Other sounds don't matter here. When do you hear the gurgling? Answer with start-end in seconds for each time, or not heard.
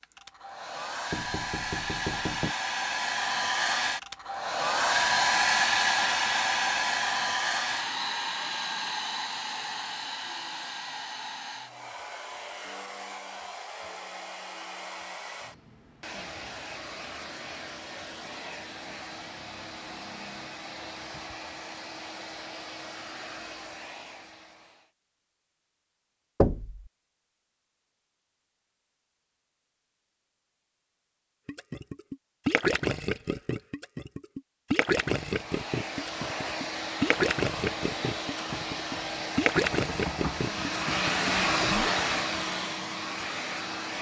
31.4-41.9.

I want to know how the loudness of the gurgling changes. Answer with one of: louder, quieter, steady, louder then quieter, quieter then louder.
steady.